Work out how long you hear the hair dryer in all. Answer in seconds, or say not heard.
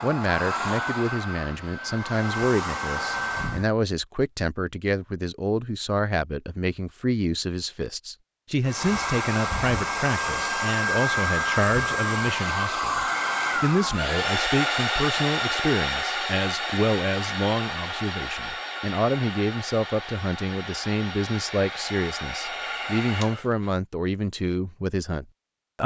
19 s.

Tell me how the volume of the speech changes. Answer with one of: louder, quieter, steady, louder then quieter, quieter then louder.
steady.